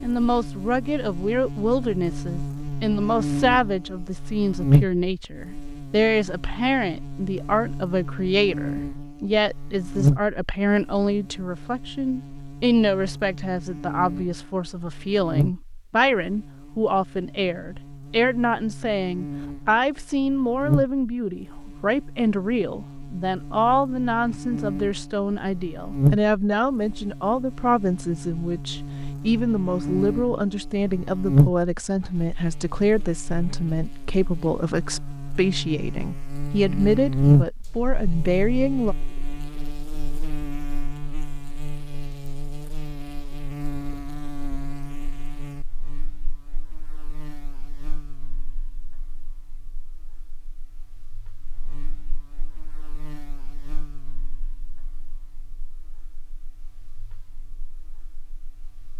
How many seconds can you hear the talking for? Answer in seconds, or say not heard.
39 s.